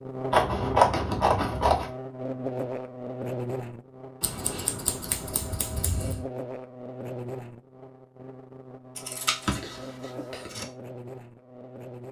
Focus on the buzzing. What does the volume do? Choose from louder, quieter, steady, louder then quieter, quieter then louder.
quieter.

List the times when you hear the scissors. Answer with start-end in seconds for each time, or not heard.
0.3-1.9, 4.2-6.2, 8.9-10.7.